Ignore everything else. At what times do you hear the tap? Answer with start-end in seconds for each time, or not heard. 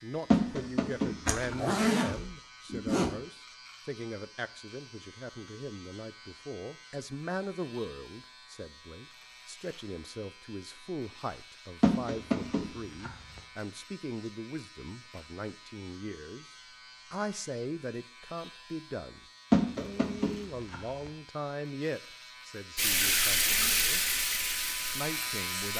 22.8-25.7.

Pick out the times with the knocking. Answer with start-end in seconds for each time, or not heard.
0.3-1.6, 11.8-13.4, 19.5-21.1.